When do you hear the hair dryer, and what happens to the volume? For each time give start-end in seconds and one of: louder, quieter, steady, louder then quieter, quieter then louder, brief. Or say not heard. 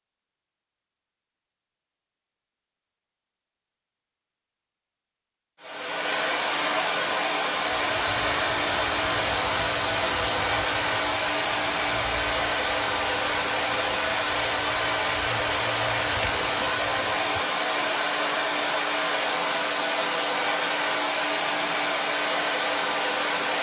5.6-23.5 steady.